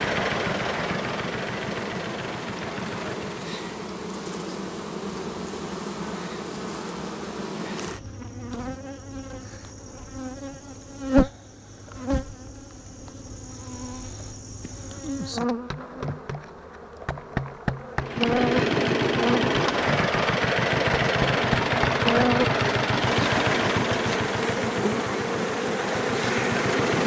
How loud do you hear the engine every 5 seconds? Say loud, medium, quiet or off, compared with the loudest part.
medium, off, off, loud, loud, medium.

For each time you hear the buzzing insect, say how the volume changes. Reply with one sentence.
You can hear the buzzing insect from 0.0 to 27.0 s, getting louder.